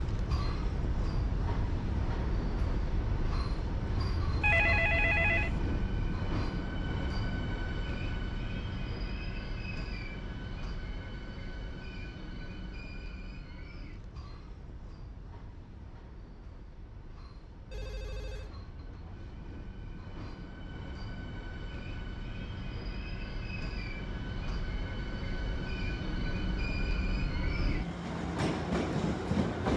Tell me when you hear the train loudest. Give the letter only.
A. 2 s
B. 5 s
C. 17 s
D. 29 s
D.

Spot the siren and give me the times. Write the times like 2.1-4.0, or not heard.
not heard.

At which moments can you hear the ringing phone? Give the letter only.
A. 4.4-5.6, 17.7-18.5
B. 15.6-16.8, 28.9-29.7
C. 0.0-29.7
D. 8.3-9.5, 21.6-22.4
A.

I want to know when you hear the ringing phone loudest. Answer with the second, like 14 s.
5 s.